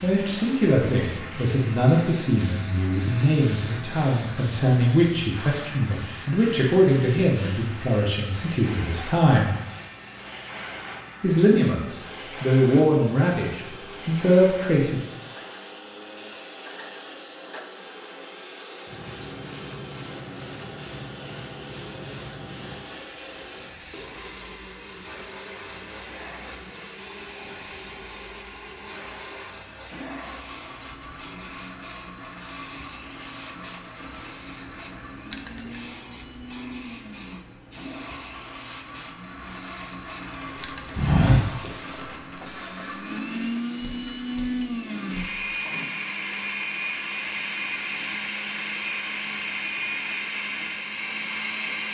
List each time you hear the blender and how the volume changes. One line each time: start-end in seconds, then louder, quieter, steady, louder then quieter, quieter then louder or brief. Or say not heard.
0.2-51.8 louder.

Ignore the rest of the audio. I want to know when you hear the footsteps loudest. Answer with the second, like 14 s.
41 s.